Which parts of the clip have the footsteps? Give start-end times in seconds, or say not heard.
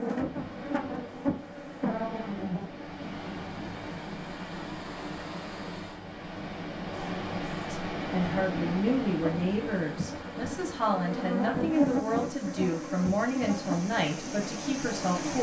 not heard.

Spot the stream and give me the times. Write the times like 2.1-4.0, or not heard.
0.1-15.3.